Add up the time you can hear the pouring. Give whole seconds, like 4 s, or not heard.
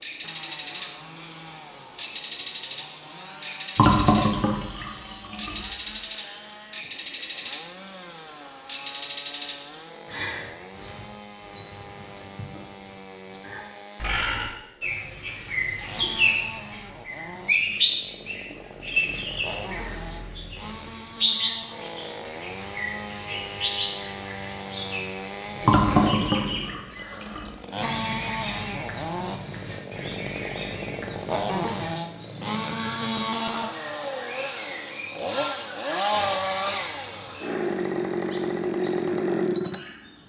4 s.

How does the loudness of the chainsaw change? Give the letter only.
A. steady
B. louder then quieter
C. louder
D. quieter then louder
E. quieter
C.